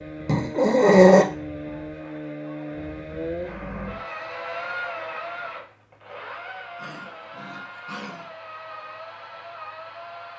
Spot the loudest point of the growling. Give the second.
1 s.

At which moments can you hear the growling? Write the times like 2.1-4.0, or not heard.
0.2-1.2, 6.8-8.3.